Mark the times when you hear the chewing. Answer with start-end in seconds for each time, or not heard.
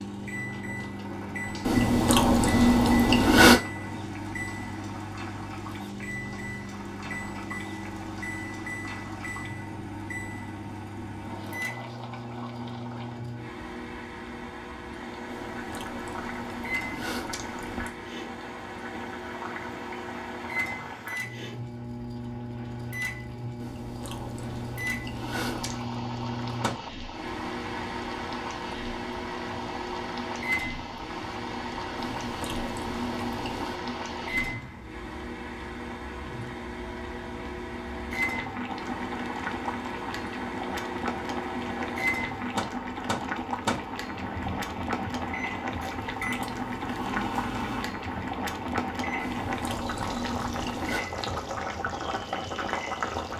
1.6-3.6, 15.2-18.1, 23.6-25.9, 31.9-33.8, 49.1-51.0.